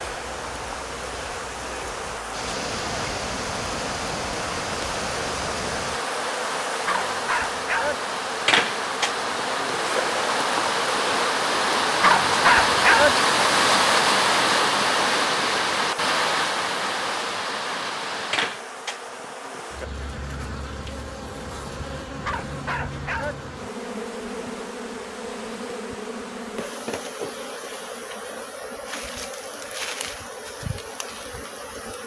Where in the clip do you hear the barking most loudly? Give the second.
13 s.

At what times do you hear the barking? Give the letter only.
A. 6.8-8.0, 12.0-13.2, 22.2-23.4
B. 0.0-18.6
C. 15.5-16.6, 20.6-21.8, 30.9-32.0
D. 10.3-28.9
A.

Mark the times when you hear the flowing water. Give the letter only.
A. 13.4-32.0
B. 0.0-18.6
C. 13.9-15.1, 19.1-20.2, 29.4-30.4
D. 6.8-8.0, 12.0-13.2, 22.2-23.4
B.